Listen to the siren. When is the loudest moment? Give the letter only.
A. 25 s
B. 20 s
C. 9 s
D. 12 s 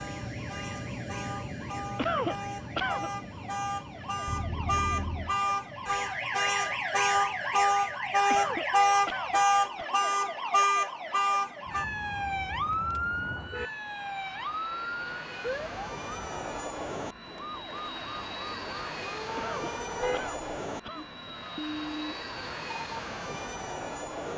C.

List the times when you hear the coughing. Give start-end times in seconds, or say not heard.
1.9-3.1, 8.2-9.9, 19.4-21.1.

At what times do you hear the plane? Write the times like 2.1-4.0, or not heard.
0.0-24.3.